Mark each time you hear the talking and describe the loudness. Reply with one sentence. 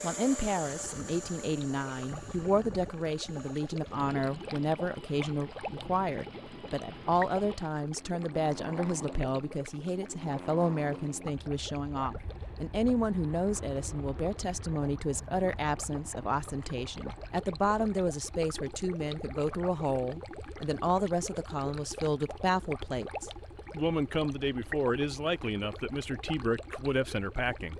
You can hear the talking from 0.0 to 27.7 s, at a steady volume.